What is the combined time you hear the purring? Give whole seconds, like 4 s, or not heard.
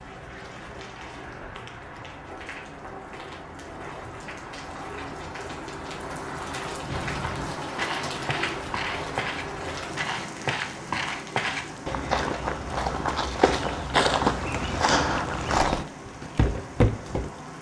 not heard.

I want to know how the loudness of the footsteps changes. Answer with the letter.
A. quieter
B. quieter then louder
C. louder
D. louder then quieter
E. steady
C.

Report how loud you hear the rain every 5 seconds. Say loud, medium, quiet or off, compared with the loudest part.
medium, loud, medium, medium.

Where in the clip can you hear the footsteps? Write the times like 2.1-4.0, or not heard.
6.8-17.3.